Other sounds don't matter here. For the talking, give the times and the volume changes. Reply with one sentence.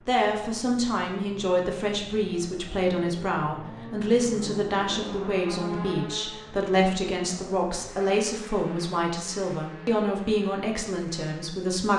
The talking can be heard from 0.1 to 11.9 s, at a steady volume.